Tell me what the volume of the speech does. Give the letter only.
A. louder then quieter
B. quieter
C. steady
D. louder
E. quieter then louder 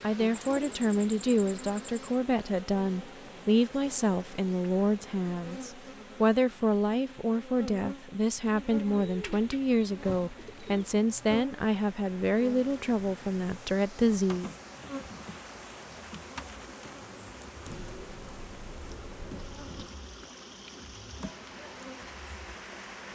C.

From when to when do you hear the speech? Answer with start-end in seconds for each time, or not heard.
0.0-14.5.